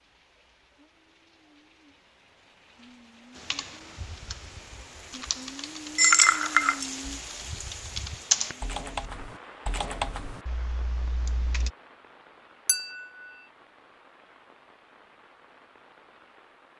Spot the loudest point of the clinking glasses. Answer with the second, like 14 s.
6 s.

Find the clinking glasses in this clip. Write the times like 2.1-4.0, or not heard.
6.0-6.8, 12.7-13.1.